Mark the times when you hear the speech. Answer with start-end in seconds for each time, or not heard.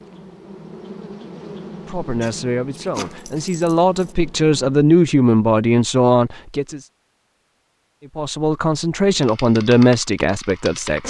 1.9-6.8, 8.2-11.0.